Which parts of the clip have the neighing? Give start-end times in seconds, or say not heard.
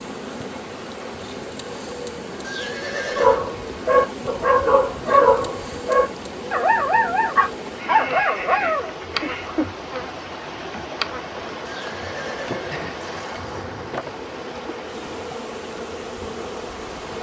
2.4-3.4, 7.8-9.6, 11.7-13.7.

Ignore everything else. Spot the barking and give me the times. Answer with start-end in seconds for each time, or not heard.
3.1-9.7.